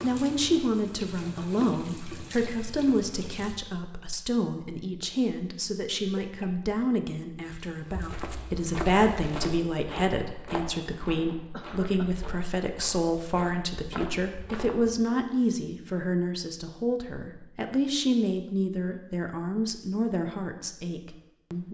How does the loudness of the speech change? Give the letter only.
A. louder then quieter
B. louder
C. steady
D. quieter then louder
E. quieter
C.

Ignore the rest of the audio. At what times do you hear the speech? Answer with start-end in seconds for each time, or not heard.
0.0-21.7.